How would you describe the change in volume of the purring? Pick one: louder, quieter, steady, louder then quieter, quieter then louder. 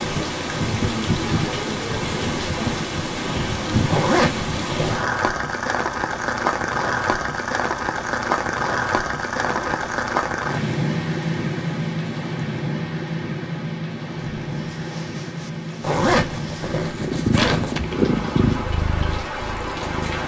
louder then quieter.